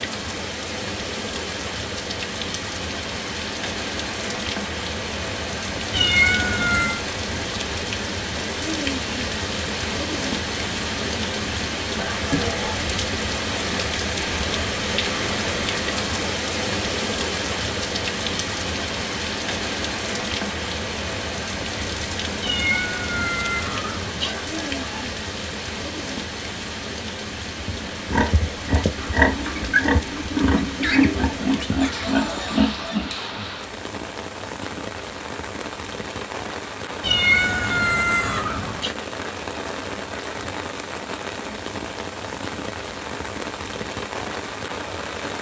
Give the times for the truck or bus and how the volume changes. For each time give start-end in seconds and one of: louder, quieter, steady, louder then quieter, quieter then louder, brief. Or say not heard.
not heard.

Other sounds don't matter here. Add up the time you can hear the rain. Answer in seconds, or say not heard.
45 s.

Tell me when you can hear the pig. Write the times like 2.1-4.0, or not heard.
27.6-33.2.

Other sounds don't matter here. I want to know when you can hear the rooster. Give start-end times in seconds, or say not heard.
11.9-12.8, 24.2-25.1.